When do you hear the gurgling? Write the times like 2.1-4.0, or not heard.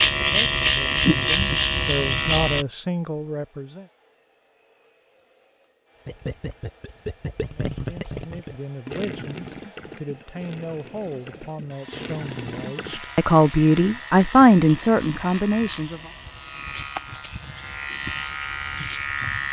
6.0-13.0.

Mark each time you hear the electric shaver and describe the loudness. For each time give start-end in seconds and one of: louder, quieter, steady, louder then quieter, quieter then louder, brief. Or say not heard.
0.0-2.6 brief
12.8-19.4 louder.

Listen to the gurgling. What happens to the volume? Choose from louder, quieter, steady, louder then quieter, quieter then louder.
quieter then louder.